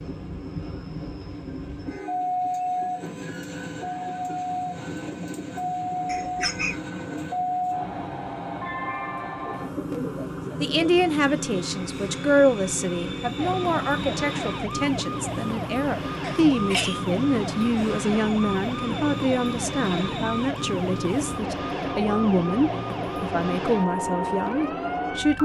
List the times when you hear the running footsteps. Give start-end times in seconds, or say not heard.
not heard.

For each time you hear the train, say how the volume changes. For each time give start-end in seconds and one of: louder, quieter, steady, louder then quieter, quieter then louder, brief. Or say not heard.
0.0-25.4 steady.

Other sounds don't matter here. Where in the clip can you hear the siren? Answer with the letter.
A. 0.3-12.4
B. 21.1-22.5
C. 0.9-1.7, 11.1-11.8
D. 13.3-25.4
D.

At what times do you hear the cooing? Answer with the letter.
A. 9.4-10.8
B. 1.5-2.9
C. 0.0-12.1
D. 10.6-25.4
A.